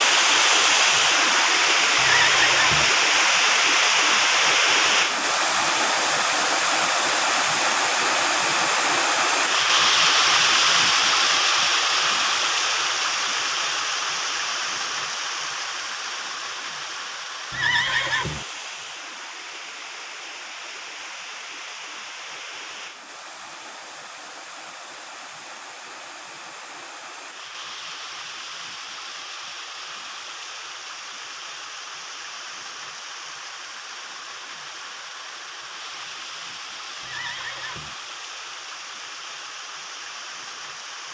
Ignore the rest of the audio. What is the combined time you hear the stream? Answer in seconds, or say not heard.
41 s.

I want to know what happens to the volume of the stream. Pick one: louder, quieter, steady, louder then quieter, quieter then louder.
quieter.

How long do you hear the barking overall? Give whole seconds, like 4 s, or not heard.
not heard.